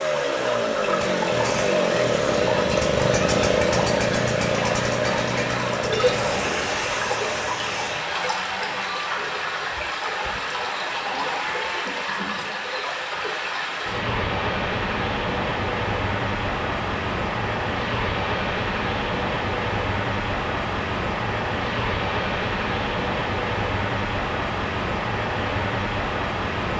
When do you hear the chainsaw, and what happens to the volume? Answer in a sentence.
The chainsaw can be heard from 0.0 to 11.8 s, getting quieter.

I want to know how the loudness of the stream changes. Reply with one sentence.
The loudness of the stream stays about the same.